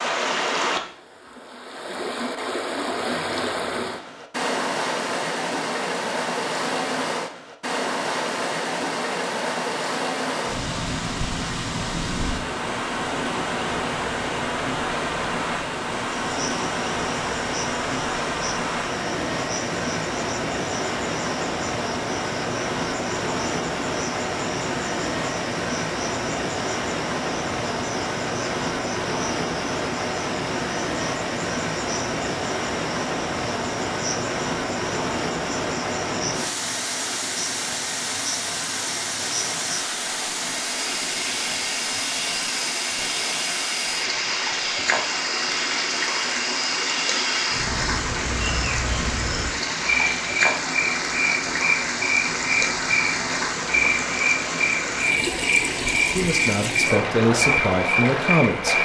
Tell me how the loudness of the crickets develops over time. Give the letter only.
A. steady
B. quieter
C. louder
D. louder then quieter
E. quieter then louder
C.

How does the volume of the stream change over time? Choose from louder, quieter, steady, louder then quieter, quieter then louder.
steady.